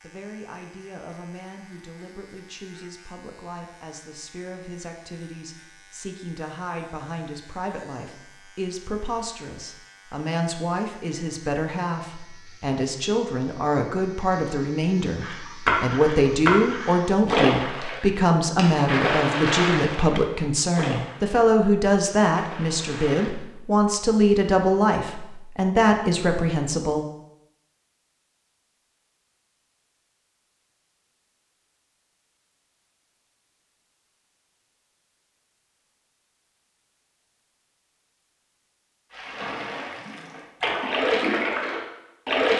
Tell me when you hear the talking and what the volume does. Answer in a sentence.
You can hear the talking from 0.0 to 27.1 s, getting louder.